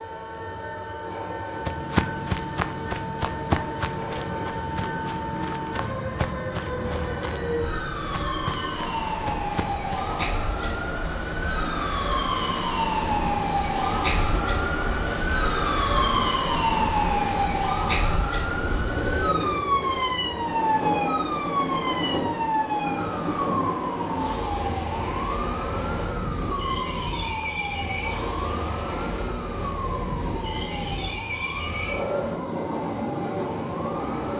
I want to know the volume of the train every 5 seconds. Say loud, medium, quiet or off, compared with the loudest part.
medium, medium, loud, loud, loud, loud, loud.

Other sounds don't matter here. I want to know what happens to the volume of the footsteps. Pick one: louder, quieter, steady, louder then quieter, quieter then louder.
quieter.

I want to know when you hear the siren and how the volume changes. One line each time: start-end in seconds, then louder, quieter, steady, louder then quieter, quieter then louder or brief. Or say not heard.
0.0-34.3 louder then quieter.